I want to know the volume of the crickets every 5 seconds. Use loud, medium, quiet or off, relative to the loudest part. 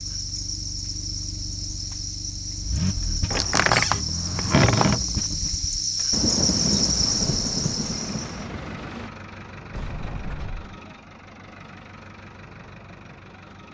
medium, loud, off.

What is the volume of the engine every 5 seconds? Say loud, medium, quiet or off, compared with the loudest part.
loud, loud, medium.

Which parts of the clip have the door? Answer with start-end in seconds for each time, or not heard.
3.3-5.1, 9.7-10.8.